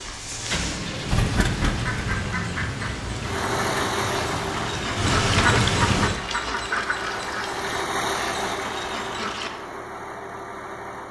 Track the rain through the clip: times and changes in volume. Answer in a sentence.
You can hear the rain from 0.0 to 6.1 s, getting louder.